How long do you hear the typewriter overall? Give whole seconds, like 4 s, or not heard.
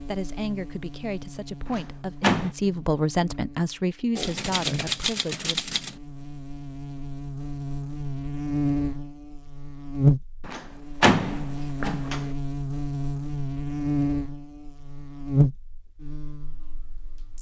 2 s.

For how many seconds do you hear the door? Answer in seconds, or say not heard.
3 s.